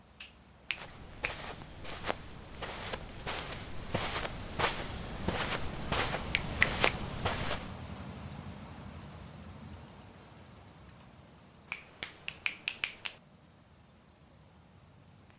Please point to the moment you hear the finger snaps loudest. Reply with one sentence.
The volume of the finger snaps peaks at 13 seconds.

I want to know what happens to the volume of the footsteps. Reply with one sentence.
The volume of the footsteps goes up.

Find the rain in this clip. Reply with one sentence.
You can hear the rain from 0.0 to 15.3 s.